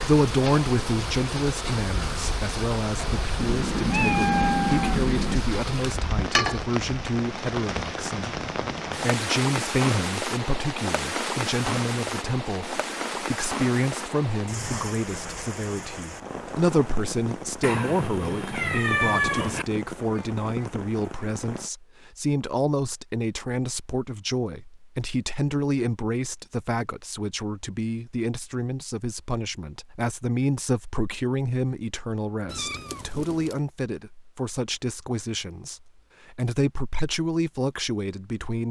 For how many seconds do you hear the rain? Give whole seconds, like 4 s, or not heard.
22 s.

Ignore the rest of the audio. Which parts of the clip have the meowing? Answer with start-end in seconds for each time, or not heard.
3.4-5.4, 17.6-19.6, 32.5-33.5.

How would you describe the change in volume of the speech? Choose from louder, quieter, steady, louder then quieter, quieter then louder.
steady.